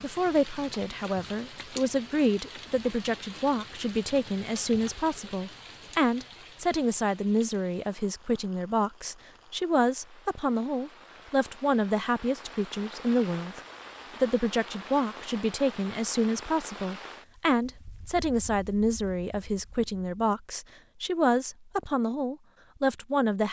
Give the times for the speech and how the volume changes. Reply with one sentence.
The speech can be heard from 0.0 to 13.6 s, at a steady volume; and from 14.2 to 23.4 s, at a steady volume.